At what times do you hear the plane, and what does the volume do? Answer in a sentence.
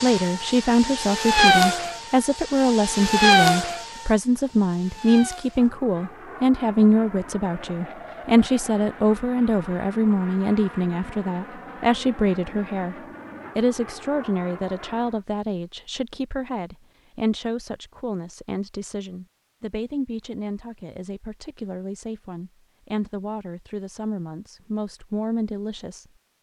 The plane can be heard from 0.0 to 15.2 s, getting quieter.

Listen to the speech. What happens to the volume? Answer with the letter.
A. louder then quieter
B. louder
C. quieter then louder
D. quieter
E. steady
D.